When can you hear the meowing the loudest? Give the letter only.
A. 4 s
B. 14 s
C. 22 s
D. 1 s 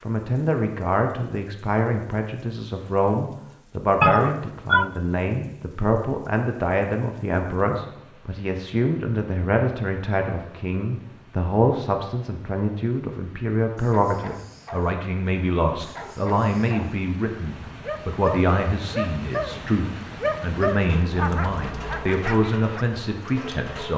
A.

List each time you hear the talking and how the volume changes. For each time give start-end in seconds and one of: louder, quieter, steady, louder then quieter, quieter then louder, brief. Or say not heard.
0.0-23.9 steady.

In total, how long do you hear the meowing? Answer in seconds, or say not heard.
2 s.